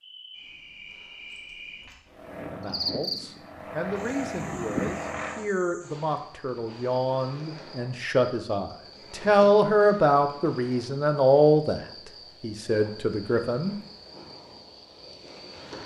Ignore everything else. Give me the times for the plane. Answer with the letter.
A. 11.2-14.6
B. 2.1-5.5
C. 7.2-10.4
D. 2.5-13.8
B.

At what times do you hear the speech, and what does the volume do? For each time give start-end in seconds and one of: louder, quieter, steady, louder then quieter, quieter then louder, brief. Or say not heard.
2.5-13.8 louder.